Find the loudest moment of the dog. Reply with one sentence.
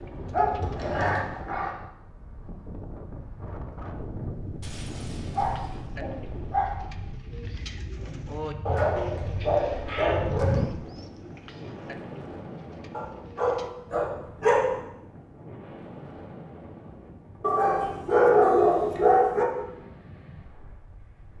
The loudest moment of the dog is at 18 seconds.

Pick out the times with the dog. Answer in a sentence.
You can hear the dog from 0.3 to 1.8 s, from 4.6 to 6.8 s, from 8.7 to 10.7 s, from 12.9 to 14.8 s and from 17.4 to 19.4 s.